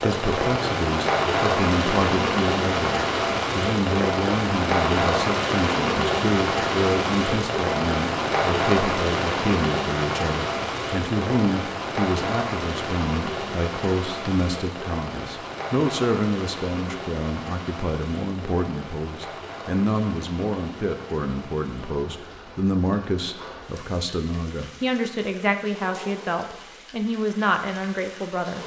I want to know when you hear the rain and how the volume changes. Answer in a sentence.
The rain can be heard from 0.0 to 28.6 s, getting quieter.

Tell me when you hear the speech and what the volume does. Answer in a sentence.
You can hear the speech from 0.0 to 28.6 s, at a steady volume.